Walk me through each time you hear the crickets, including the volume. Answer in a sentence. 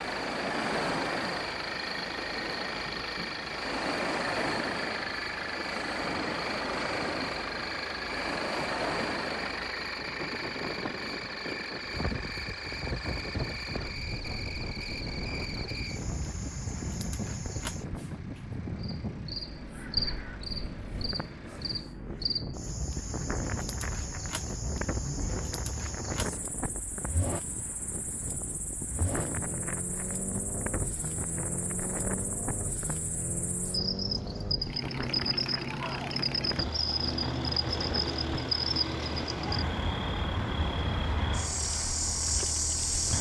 You can hear the crickets from 0.0 to 43.1 s, getting louder.